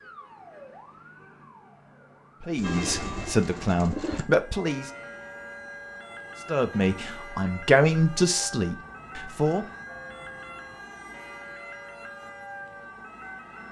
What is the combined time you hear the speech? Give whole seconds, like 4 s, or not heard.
6 s.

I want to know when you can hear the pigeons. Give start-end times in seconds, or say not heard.
2.5-4.2.